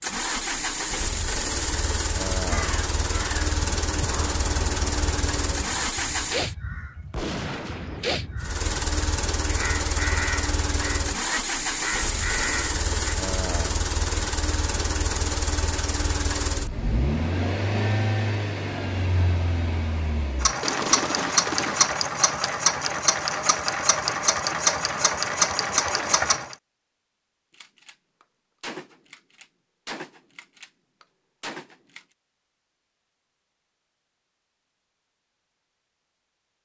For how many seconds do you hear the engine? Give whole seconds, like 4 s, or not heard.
25 s.